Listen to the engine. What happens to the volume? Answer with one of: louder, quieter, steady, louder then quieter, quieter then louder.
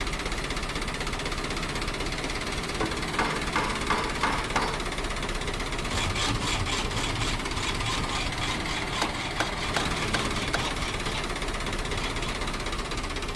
steady.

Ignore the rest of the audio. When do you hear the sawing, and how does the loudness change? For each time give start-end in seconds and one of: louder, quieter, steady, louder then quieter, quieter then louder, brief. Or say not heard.
5.8-12.4 quieter.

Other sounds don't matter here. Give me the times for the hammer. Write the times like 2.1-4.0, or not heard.
2.8-4.8, 9.0-10.8.